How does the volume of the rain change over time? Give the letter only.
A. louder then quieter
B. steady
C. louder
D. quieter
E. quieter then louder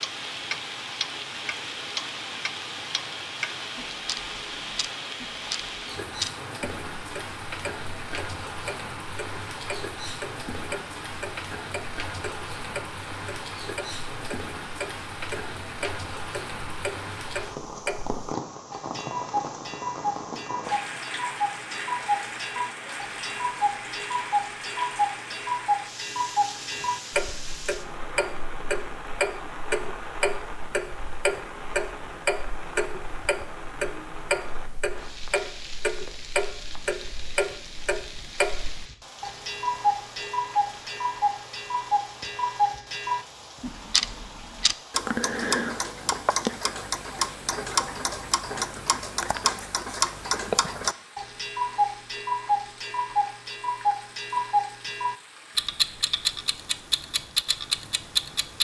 D.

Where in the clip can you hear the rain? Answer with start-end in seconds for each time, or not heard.
0.0-58.5.